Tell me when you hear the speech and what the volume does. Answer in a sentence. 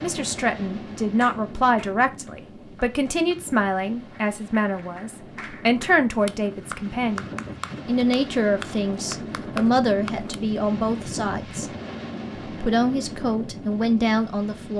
You can hear the speech from 0.0 to 11.7 s, at a steady volume; and briefly from 12.6 to 14.7 s.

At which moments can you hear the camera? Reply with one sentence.
You can't hear the camera here.